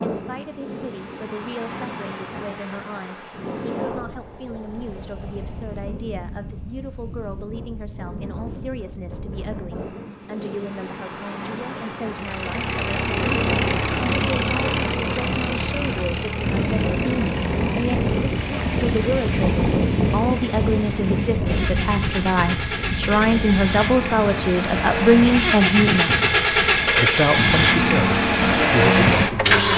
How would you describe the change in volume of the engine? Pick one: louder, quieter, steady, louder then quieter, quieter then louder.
quieter then louder.